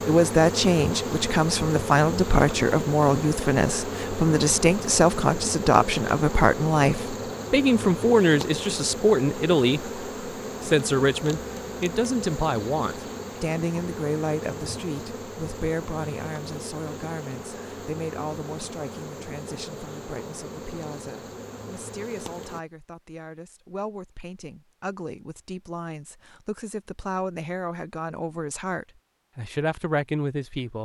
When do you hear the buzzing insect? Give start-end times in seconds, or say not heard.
0.0-22.6.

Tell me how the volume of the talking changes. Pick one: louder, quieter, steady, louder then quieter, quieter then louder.
quieter then louder.